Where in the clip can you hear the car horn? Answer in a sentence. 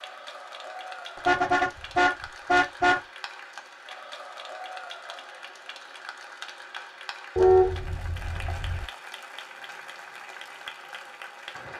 You can hear the car horn from 1.1 to 3.0 s and from 7.3 to 8.8 s.